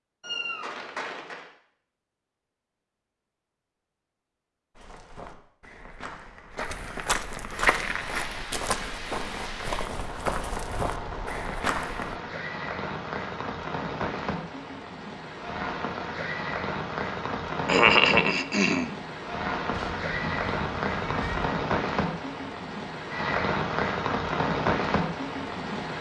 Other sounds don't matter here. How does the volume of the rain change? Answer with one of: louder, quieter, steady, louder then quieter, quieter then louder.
louder.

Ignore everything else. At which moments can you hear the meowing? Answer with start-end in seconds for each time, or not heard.
0.2-1.4, 19.7-21.6.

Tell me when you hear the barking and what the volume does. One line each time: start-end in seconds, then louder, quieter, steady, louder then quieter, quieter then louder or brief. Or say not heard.
not heard.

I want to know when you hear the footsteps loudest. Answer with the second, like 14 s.
8 s.